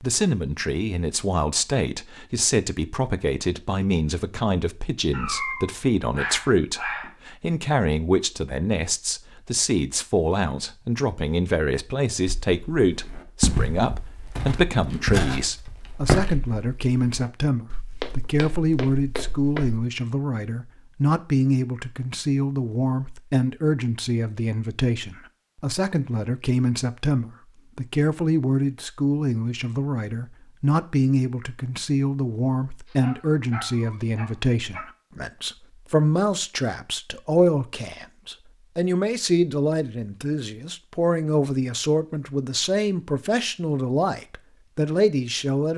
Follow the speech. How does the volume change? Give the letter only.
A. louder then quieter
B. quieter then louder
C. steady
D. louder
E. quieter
C.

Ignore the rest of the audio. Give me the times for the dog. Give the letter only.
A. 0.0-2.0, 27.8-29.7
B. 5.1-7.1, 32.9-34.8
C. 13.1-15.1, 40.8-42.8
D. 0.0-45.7
B.